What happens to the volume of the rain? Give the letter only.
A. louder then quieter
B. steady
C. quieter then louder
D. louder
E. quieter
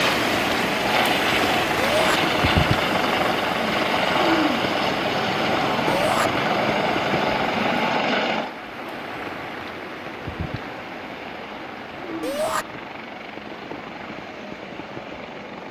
E.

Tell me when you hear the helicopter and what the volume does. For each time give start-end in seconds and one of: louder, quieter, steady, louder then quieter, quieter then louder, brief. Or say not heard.
0.0-15.6 quieter.